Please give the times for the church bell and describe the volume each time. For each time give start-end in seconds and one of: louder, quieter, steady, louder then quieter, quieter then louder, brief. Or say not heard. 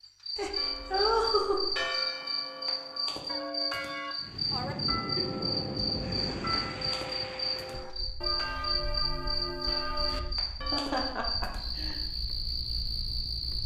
0.6-11.2 steady.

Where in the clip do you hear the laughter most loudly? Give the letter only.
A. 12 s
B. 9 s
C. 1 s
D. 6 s
C.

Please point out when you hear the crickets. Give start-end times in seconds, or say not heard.
0.0-13.6.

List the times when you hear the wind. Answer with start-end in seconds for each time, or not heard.
4.2-13.6.